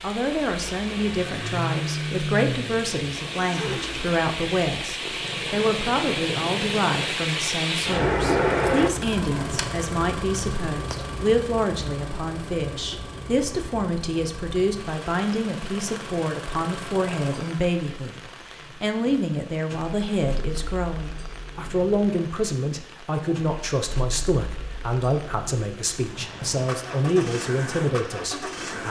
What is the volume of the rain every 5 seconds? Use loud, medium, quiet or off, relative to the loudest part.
medium, loud, quiet, quiet, quiet, quiet.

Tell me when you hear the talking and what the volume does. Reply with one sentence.
The talking can be heard from 0.0 to 28.8 s, at a steady volume.